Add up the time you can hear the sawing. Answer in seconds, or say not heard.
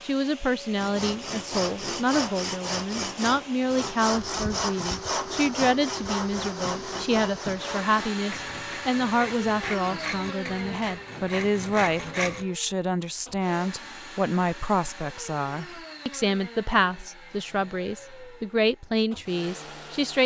12 s.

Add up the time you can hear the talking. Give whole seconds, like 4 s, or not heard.
20 s.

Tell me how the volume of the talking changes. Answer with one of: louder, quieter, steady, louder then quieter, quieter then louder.
steady.